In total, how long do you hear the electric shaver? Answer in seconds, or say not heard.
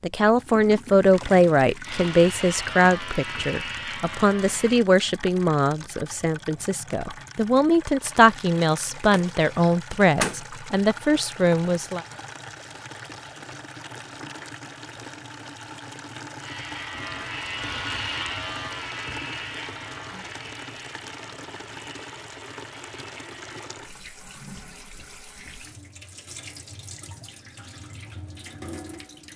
10 s.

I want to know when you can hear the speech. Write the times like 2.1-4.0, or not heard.
0.0-12.0.